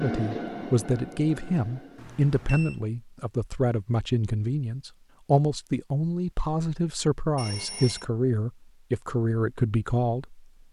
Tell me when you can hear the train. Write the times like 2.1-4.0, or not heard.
0.0-2.2.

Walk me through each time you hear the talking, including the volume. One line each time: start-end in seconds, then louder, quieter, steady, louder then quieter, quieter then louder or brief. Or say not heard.
0.0-10.4 steady.